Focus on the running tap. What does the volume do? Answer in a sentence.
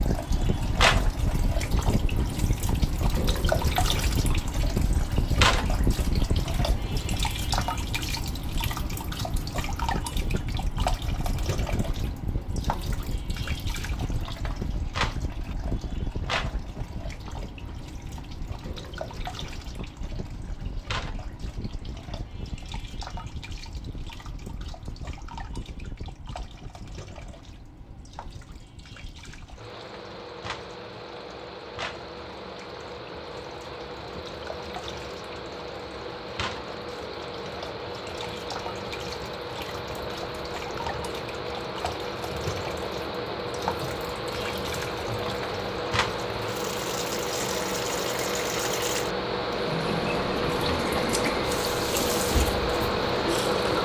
The volume of the running tap goes down, then up.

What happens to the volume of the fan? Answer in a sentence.
The volume of the fan goes down, then up.